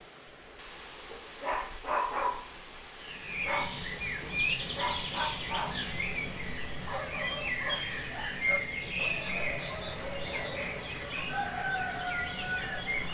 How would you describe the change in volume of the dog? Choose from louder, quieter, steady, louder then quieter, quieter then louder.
quieter.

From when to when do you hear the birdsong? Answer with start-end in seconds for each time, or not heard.
3.0-13.0.